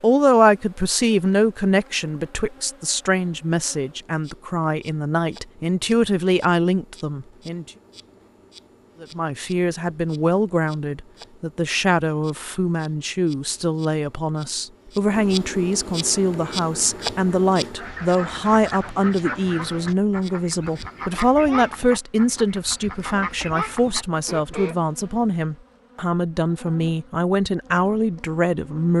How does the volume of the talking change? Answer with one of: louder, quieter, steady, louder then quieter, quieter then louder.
steady.